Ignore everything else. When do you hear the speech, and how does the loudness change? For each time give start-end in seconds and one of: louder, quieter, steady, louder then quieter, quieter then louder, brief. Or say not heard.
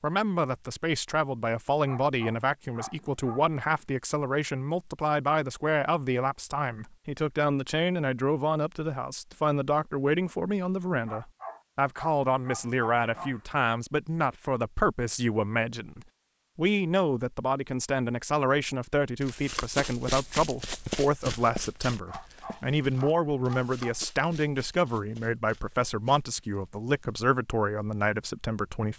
0.0-28.9 steady.